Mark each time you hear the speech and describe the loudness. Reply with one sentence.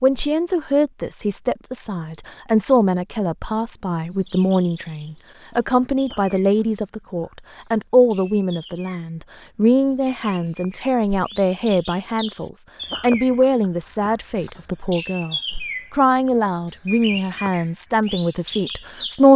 You can hear the speech from 0.0 to 19.3 s, at a steady volume.